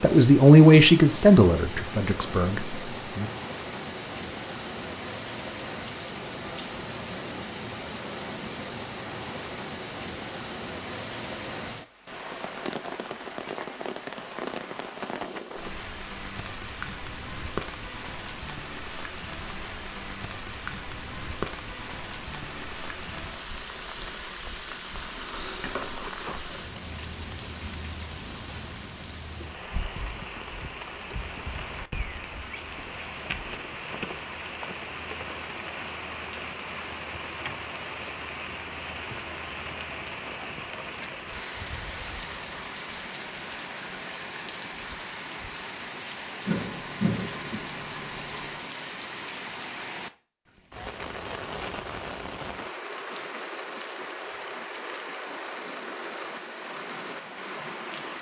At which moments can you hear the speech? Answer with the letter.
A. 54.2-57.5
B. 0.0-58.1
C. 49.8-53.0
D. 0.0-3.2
D.